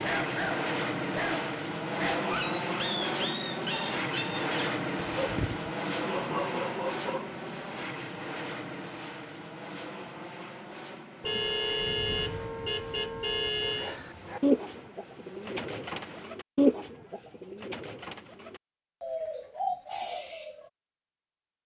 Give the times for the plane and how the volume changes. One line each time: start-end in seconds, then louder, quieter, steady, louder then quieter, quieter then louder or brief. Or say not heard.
0.0-16.3 quieter.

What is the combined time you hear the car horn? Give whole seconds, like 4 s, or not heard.
3 s.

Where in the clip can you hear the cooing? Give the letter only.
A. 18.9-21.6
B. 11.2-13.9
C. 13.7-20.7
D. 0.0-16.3
C.